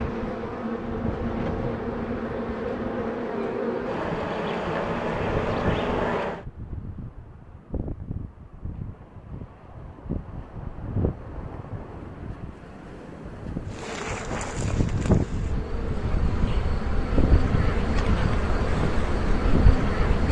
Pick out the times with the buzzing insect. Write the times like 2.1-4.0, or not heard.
0.0-6.5, 13.7-20.2.